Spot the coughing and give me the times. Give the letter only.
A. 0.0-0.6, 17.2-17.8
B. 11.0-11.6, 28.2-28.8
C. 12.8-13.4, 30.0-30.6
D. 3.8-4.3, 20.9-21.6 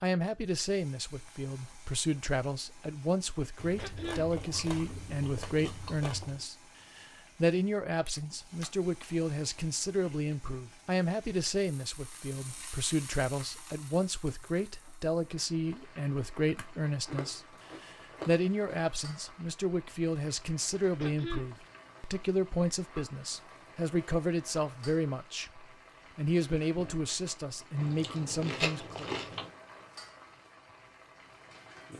D.